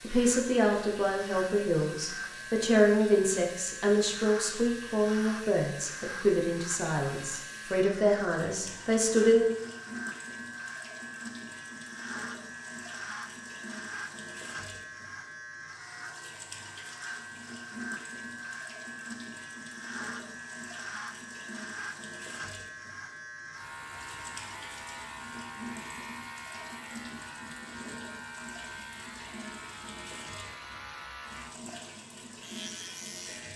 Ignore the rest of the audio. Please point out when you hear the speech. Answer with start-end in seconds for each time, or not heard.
0.0-9.6.